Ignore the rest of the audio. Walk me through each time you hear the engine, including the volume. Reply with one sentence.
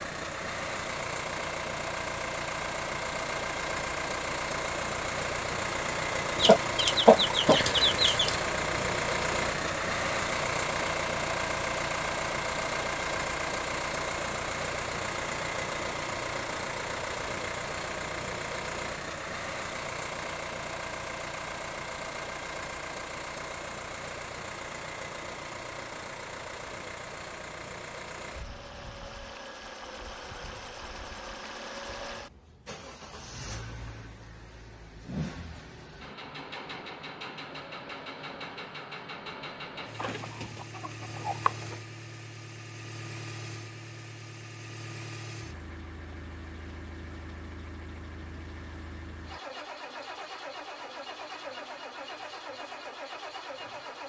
You can hear the engine from 0.0 to 54.0 s, getting quieter.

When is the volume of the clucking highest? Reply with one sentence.
The volume of the clucking peaks at 7 seconds.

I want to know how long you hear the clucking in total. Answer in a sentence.
The clucking can be heard for 4 seconds in total.